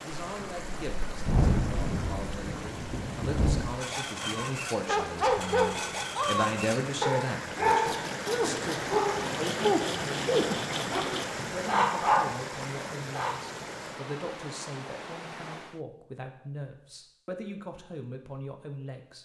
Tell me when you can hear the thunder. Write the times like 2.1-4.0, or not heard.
0.2-3.7.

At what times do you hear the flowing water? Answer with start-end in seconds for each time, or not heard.
0.0-15.8.